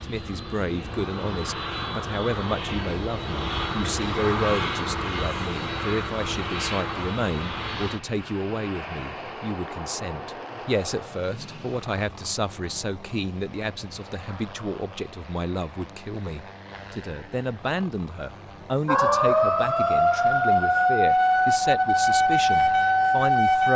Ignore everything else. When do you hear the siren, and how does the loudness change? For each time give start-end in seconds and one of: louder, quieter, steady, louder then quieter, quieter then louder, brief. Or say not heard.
18.9-23.7 steady.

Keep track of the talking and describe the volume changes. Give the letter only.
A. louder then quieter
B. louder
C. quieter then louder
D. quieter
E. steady
E.